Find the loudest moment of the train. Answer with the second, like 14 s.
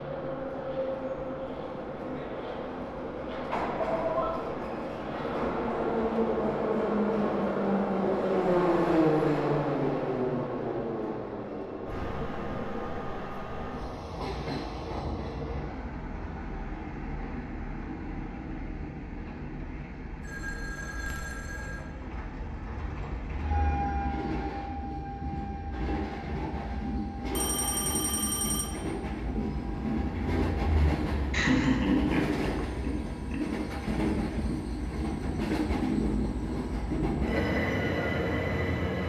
9 s.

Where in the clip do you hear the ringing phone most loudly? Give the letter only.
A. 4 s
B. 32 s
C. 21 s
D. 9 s
A.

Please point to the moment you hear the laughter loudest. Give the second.
32 s.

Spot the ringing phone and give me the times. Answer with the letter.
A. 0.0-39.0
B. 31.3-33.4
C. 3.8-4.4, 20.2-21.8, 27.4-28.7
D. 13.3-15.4
C.